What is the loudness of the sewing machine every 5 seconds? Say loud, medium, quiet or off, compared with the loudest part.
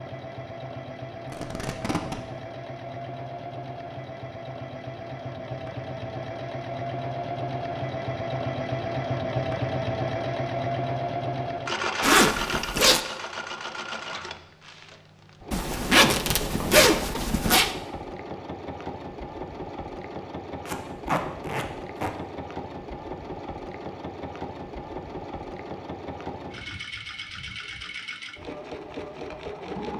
medium, loud, loud, medium, medium, medium.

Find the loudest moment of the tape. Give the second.
21 s.